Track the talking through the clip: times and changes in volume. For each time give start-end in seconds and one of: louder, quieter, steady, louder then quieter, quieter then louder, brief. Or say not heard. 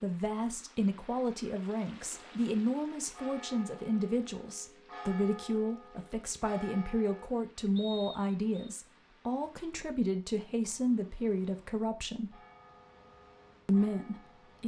0.0-12.4 steady
13.7-14.6 brief.